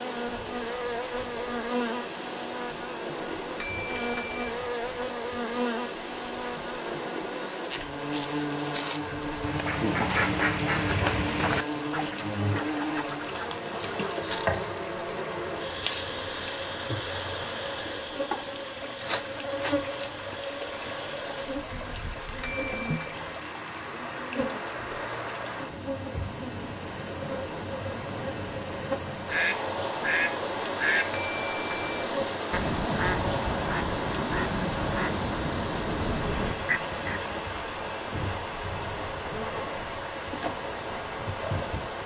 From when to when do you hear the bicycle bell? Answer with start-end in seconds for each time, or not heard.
3.6-4.5, 22.4-23.1, 31.1-32.0.